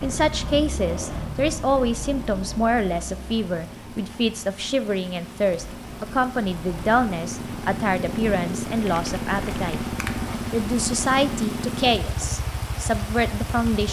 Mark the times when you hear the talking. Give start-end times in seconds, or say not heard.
0.0-9.8, 10.5-13.8.